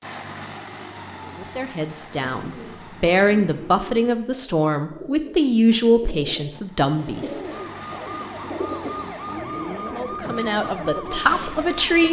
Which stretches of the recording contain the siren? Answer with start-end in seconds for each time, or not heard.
7.5-12.0.